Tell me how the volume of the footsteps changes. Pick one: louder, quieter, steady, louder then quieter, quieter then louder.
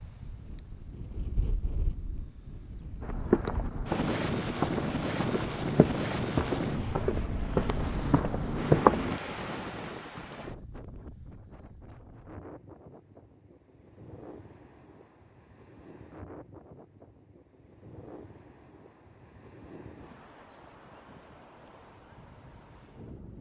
louder.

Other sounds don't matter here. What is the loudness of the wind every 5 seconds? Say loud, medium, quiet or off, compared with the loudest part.
loud, loud, quiet, quiet, quiet.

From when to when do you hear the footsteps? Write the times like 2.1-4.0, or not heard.
3.0-9.2.